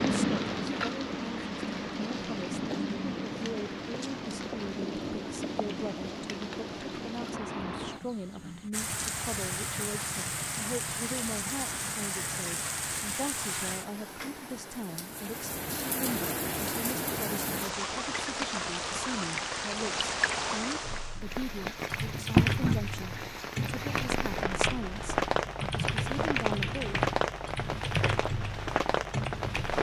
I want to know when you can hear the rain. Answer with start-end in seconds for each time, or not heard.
0.0-29.7.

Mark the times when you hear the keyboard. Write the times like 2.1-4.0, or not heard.
20.8-29.7.